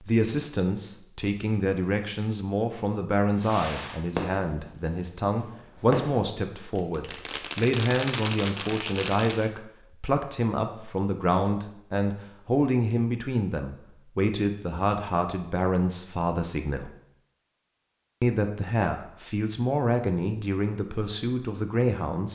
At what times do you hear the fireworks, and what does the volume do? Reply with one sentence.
You can hear the fireworks from 3.4 to 9.5 s, getting quieter then louder.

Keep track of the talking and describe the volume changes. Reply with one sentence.
The loudness of the talking stays about the same.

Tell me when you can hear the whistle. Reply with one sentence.
You can't hear the whistle here.